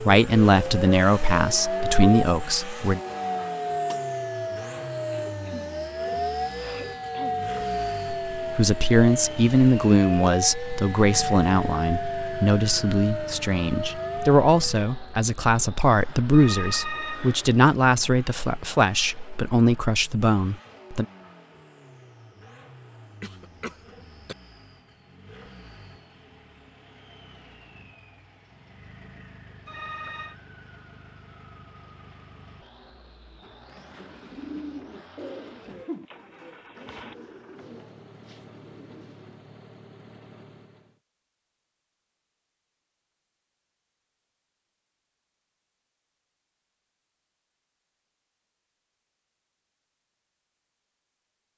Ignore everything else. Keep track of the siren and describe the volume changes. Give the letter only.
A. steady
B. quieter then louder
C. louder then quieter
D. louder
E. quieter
A.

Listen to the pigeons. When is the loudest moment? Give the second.
35 s.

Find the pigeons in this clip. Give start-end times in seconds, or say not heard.
33.7-39.2.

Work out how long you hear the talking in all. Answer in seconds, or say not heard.
16 s.